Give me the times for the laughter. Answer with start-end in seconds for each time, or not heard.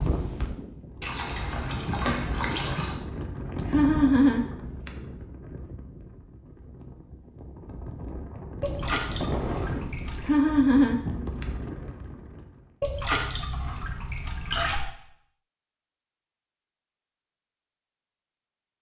3.7-4.9, 10.2-11.4.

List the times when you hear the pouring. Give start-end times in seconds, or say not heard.
1.0-3.0, 8.6-10.3, 12.8-14.8.